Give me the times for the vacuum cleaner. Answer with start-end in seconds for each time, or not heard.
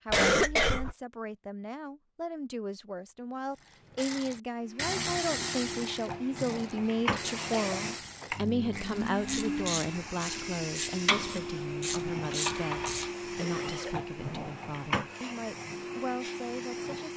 4.5-17.1.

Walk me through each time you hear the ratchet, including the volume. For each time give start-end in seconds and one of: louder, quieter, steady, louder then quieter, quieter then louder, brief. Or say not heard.
3.5-13.1 quieter then louder.